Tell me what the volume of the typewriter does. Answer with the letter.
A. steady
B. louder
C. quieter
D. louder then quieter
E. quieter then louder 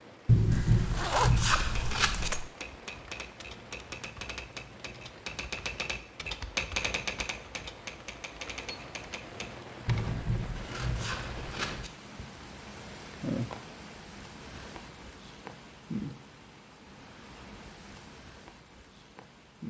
D.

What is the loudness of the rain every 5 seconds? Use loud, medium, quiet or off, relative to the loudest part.
medium, medium, loud, loud.